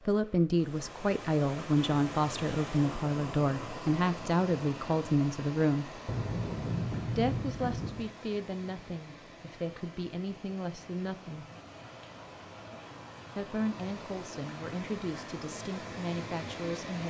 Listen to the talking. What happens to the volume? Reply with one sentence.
The loudness of the talking goes down.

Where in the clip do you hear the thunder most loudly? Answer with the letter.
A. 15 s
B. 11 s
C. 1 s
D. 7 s
D.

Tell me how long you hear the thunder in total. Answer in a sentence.
You can hear the thunder for 2 seconds altogether.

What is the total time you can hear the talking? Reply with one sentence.
You can hear the talking for 14 seconds altogether.